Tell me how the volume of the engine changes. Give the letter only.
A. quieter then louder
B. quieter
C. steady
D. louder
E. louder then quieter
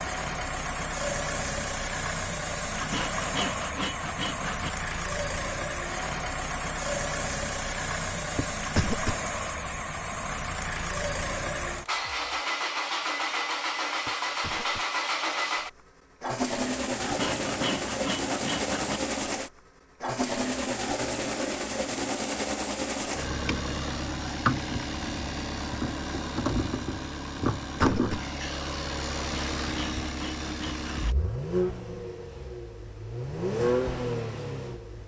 C.